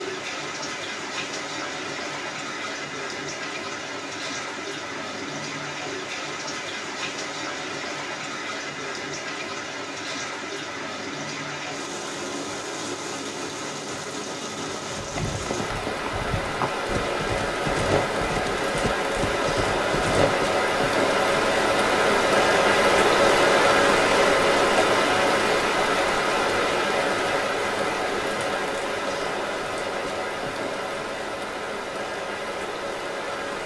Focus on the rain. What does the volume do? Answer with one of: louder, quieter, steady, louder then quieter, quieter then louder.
louder then quieter.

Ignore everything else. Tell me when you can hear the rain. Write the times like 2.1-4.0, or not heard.
0.0-33.6.